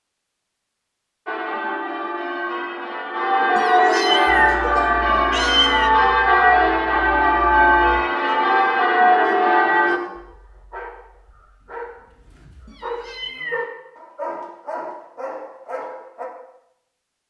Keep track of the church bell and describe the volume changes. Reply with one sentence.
The volume of the church bell goes up.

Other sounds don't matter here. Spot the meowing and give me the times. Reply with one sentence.
The meowing can be heard from 3.5 to 5.9 s and from 12.7 to 13.7 s.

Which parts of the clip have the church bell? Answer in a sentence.
The church bell can be heard from 1.2 to 10.0 s.